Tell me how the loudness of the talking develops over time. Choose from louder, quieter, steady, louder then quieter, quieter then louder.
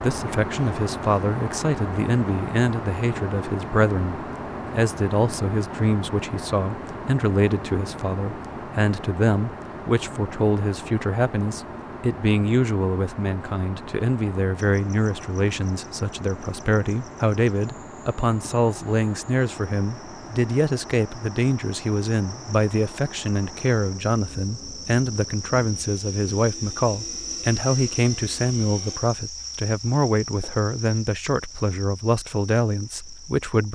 steady.